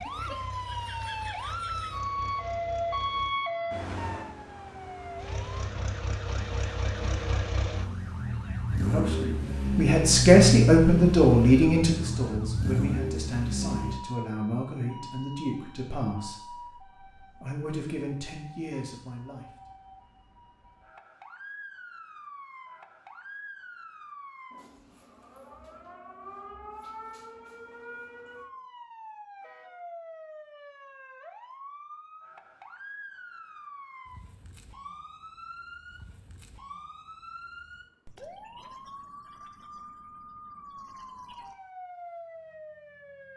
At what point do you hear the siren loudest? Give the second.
3 s.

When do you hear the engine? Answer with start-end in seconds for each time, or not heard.
0.0-3.4, 5.2-14.1.